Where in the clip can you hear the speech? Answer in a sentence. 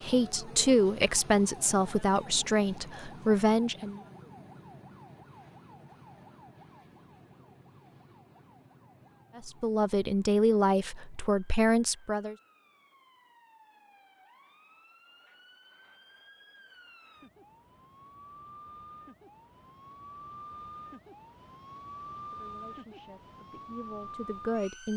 You can hear the speech from 0.0 to 4.0 s, from 9.3 to 12.3 s and from 22.1 to 24.9 s.